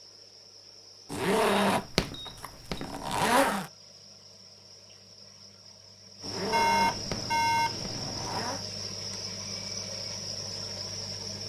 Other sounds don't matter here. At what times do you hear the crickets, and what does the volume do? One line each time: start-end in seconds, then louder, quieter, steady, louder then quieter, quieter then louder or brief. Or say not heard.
0.0-11.4 louder.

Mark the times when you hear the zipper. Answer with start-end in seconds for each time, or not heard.
1.1-3.7, 6.2-8.7.